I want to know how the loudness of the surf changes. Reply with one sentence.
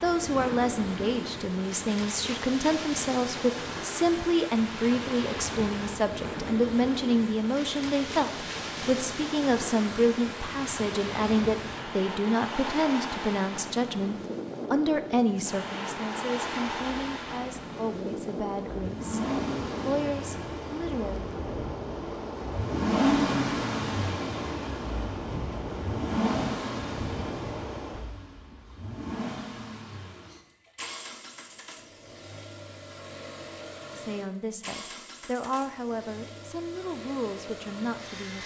The loudness of the surf stays about the same.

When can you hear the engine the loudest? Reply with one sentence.
The volume of the engine peaks at 23 seconds.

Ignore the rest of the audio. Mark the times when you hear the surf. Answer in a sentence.
You can hear the surf from 0.0 to 28.1 s.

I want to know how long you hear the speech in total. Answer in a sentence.
You can hear the speech for 25 seconds altogether.